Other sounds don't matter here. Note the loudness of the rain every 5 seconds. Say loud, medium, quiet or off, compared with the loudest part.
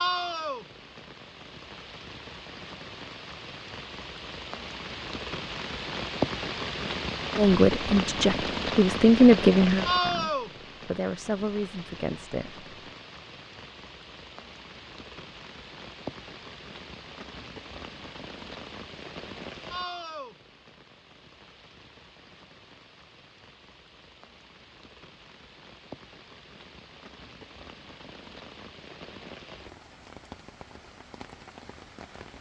medium, loud, medium, medium, quiet, quiet, quiet.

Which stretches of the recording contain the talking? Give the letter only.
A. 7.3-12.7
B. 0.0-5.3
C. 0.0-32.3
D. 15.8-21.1
A.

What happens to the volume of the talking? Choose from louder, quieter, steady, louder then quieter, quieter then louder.
louder then quieter.